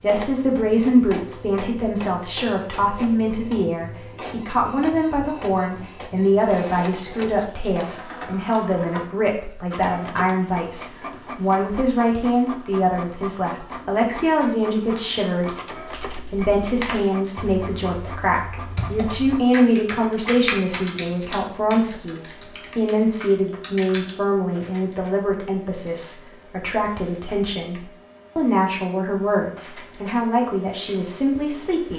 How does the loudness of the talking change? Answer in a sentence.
The loudness of the talking stays about the same.